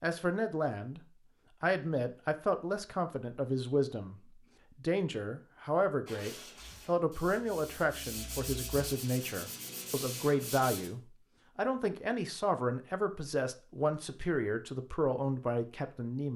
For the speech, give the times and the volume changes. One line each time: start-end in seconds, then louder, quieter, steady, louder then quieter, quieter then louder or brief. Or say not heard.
0.0-1.0 brief
1.6-16.3 steady.